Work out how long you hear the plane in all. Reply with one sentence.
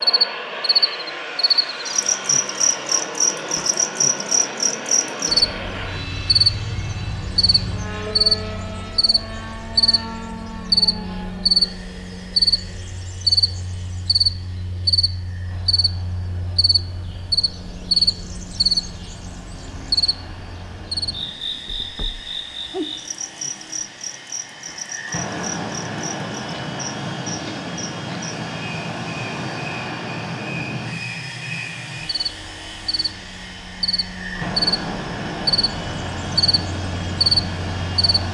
The plane can be heard for 38 seconds in total.